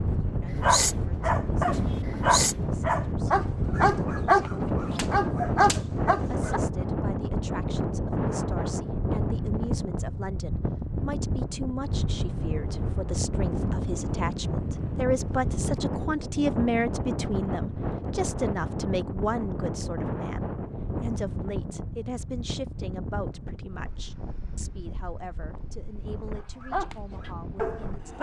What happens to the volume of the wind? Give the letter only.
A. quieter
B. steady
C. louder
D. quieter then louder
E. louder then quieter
A.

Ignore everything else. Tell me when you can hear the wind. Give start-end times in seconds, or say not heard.
0.0-28.1.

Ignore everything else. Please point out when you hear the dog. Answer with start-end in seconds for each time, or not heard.
0.5-6.6, 26.4-28.1.